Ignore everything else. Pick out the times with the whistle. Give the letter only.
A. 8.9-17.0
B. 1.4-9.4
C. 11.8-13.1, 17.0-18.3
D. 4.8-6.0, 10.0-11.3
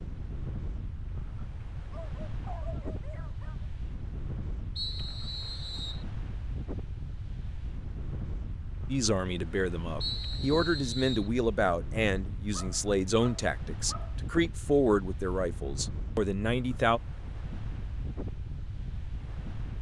D.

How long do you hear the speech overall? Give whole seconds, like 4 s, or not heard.
8 s.